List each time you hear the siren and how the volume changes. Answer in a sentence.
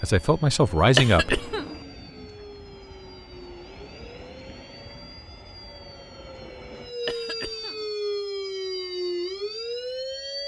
You can hear the siren from 0.0 to 10.4 s, getting louder.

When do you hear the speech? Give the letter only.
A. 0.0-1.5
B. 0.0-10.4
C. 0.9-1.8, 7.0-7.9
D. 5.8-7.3
A.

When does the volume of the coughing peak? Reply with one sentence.
The loudest moment of the coughing is at 1 second.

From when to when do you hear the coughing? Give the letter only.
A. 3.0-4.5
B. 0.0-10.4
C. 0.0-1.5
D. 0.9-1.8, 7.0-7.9
D.